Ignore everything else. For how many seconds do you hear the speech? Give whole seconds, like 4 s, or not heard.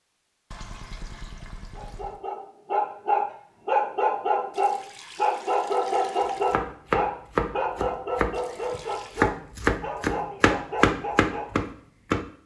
not heard.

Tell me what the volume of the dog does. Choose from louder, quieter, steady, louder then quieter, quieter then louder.
quieter.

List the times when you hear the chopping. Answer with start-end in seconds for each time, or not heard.
6.2-12.2.